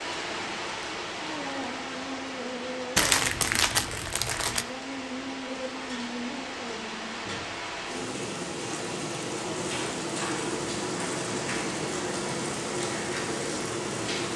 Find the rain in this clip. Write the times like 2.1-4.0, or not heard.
0.0-14.3.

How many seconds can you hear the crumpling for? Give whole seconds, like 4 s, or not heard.
2 s.